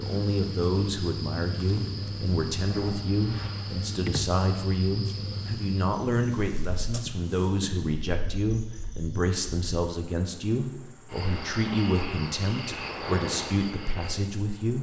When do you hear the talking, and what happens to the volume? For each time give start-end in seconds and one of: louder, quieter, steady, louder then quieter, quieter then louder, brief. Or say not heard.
0.0-14.7 steady.